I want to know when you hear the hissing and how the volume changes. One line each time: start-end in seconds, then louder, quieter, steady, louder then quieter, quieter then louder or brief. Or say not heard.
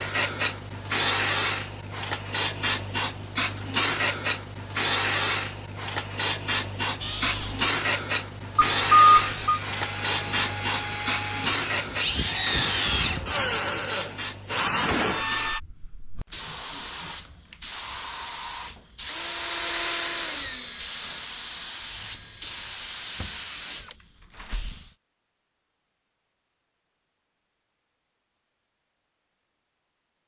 0.0-24.9 quieter.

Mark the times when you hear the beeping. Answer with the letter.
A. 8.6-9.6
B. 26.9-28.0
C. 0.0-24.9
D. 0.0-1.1
A.